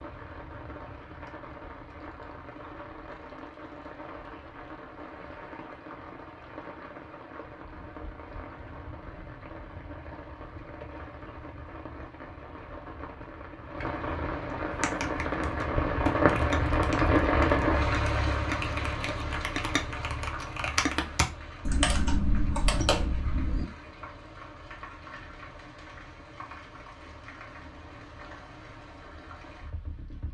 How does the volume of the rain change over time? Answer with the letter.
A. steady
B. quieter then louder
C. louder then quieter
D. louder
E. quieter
C.